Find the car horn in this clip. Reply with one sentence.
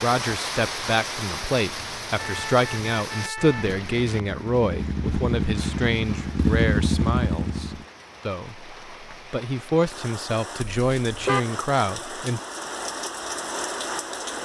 You can hear the car horn from 2.1 to 3.8 s and from 10.6 to 11.4 s.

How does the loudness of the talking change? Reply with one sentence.
The volume of the talking goes down, then up.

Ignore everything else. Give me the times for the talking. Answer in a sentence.
The talking can be heard from 0.0 to 12.4 s.